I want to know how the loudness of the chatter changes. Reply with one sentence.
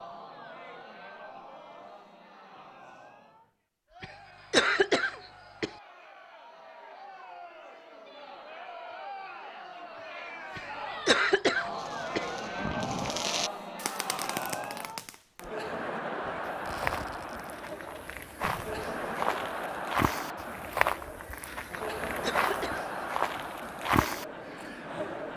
The loudness of the chatter goes up.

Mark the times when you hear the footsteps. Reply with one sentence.
The footsteps can be heard from 16.2 to 24.2 s.